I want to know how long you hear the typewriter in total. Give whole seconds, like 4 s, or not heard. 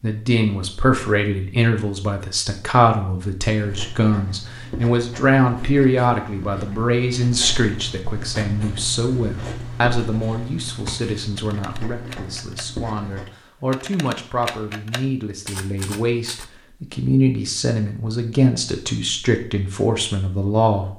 5 s.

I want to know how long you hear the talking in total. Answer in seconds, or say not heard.
21 s.